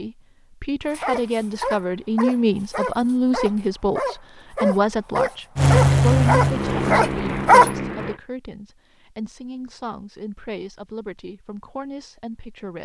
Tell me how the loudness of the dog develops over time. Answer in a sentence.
The loudness of the dog goes up.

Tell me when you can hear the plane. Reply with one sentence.
You can hear the plane from 5.5 to 8.2 s.